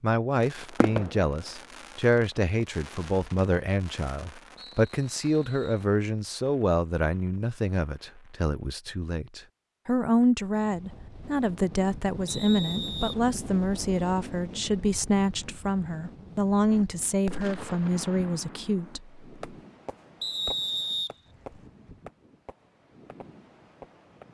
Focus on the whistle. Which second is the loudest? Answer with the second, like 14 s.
21 s.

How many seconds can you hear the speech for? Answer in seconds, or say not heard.
19 s.